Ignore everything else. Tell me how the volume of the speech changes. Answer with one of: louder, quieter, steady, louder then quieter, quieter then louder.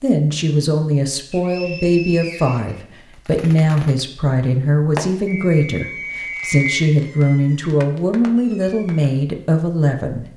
steady.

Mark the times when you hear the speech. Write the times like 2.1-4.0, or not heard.
0.0-10.3.